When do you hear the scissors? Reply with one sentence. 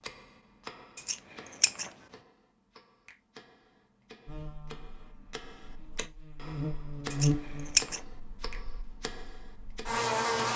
The scissors can be heard from 0.9 to 1.9 s and from 7.1 to 8.0 s.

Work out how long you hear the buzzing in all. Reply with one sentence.
The buzzing can be heard for 6 seconds in total.